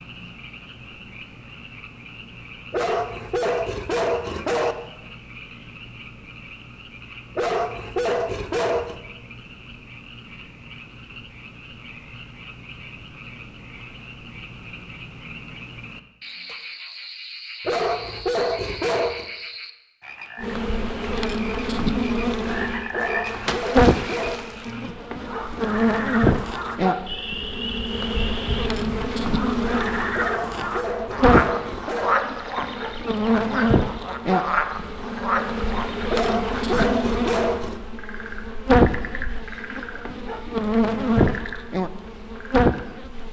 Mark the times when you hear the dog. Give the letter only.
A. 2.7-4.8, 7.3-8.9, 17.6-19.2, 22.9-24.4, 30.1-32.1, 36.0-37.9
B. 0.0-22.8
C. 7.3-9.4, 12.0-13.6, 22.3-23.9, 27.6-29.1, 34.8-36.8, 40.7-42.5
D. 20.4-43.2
A.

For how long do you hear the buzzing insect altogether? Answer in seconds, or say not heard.
23 s.